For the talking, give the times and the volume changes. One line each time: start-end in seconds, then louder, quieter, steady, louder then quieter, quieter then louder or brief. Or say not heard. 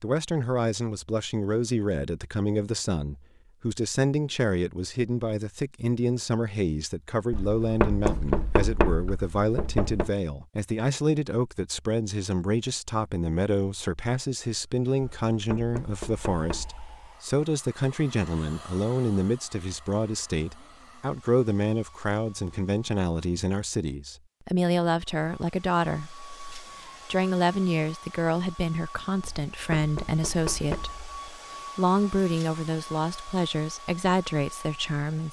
0.0-35.2 steady.